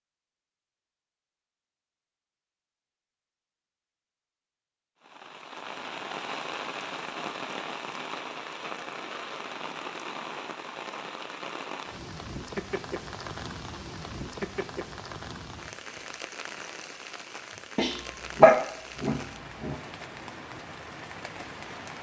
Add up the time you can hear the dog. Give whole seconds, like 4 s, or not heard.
2 s.